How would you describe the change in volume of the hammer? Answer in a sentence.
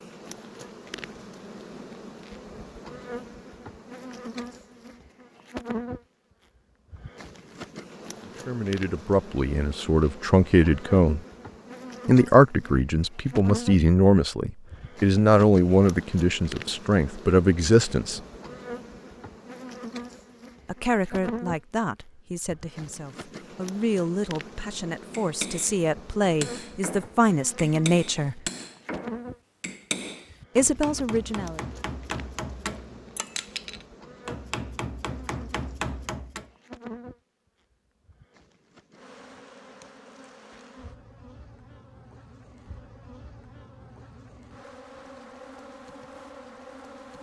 The loudness of the hammer stays about the same.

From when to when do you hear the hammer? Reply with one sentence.
The hammer can be heard from 25.1 to 36.5 s.